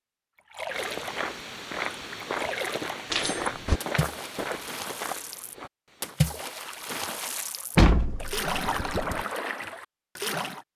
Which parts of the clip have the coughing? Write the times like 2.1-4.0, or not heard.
not heard.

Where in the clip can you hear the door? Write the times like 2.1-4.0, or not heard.
3.1-3.8, 7.8-9.2.